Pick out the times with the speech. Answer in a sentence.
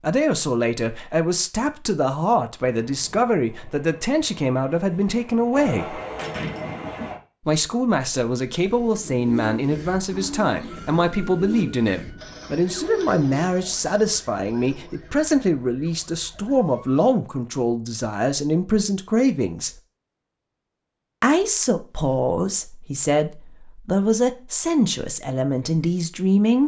You can hear the speech from 0.0 to 6.0 s, from 7.5 to 19.7 s and from 21.2 to 26.6 s.